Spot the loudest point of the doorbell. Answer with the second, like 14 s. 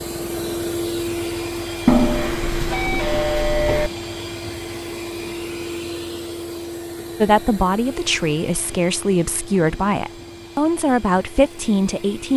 2 s.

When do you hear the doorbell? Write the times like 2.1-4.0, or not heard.
1.9-3.9.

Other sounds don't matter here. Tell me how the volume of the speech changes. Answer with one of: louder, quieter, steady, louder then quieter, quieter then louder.
steady.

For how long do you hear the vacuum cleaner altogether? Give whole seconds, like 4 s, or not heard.
12 s.